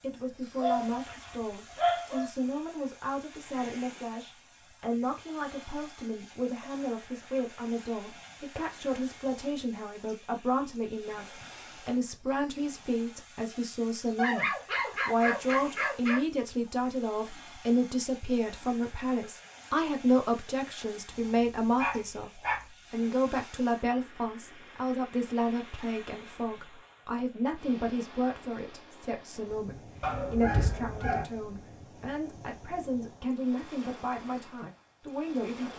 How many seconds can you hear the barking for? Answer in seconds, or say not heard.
6 s.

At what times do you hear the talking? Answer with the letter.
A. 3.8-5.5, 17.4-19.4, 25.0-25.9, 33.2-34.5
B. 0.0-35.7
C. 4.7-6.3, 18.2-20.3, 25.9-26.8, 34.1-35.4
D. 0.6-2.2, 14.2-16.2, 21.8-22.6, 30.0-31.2
B.